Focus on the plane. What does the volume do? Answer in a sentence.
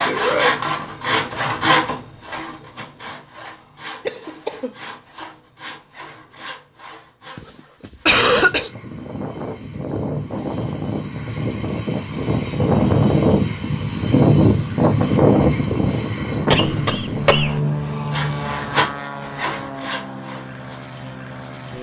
The volume of the plane goes up, then down.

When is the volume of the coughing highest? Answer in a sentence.
The volume of the coughing peaks at 8 seconds.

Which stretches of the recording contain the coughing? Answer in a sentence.
You can hear the coughing from 4.0 to 4.8 s, from 7.3 to 8.7 s and from 16.5 to 17.6 s.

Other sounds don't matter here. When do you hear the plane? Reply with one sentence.
The plane can be heard from 8.2 to 21.7 s.